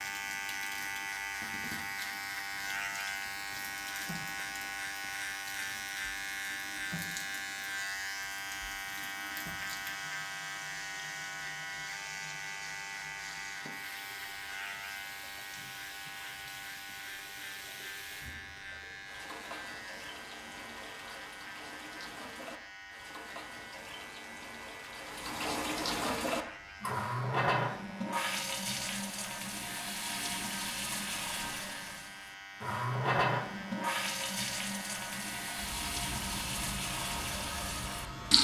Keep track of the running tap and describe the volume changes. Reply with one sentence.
The loudness of the running tap goes up.